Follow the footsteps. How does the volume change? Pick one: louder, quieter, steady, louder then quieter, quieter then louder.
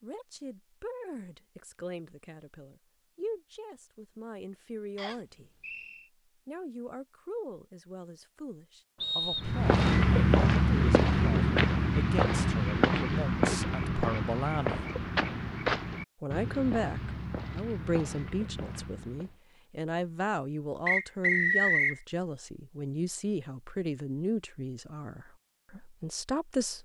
quieter.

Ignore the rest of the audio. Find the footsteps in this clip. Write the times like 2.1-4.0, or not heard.
9.4-19.4.